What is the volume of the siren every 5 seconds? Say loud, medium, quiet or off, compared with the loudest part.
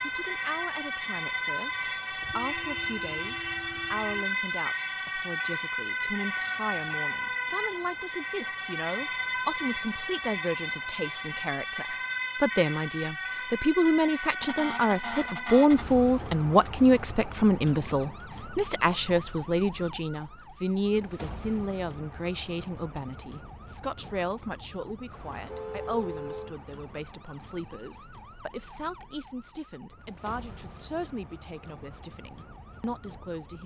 loud, loud, loud, medium, quiet, quiet, quiet.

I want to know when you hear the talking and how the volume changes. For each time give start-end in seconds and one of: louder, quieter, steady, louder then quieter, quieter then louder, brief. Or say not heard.
0.0-33.6 louder then quieter.